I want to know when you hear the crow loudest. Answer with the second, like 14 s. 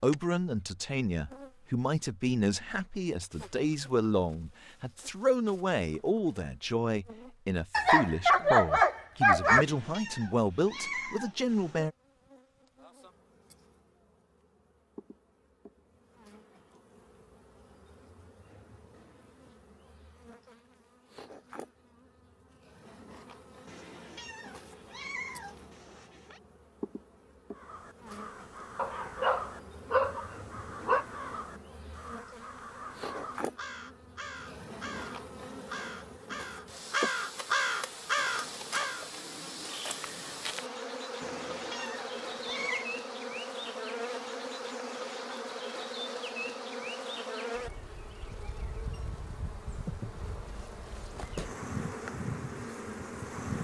38 s.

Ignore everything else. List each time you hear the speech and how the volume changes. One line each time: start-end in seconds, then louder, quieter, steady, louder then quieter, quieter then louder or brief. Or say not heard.
0.0-11.9 steady.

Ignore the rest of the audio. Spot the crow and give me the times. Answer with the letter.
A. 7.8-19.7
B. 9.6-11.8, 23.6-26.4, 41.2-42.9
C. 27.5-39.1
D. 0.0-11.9
C.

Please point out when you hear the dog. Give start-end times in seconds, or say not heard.
7.7-9.7, 28.8-31.1.